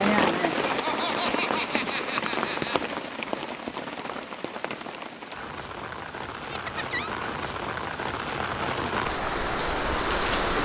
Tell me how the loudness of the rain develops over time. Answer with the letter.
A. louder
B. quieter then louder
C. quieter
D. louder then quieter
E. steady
B.